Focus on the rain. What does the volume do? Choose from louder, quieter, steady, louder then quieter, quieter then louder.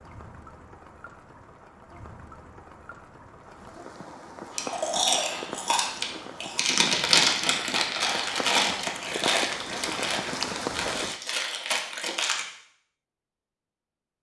louder.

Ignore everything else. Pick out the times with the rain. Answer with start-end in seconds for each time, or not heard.
0.0-11.2.